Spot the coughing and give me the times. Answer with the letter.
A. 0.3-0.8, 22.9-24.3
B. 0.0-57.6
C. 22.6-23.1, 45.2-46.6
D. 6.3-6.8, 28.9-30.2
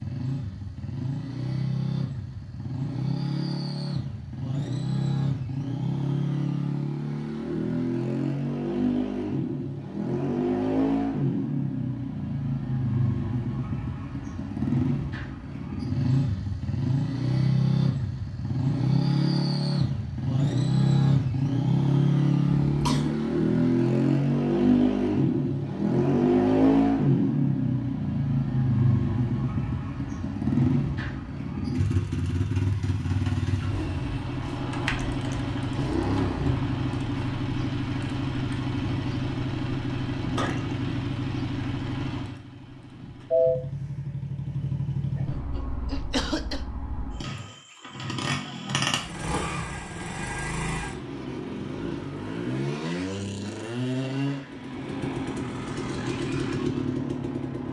C.